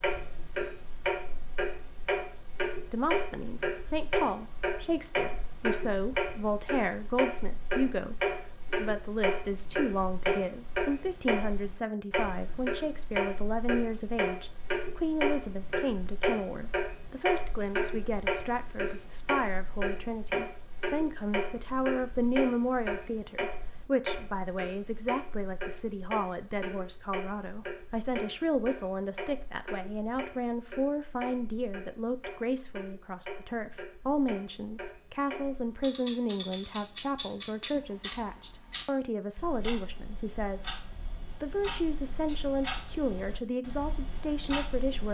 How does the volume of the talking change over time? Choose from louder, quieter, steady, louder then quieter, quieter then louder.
steady.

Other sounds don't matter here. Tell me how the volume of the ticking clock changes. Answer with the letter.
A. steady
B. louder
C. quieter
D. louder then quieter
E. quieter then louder
C.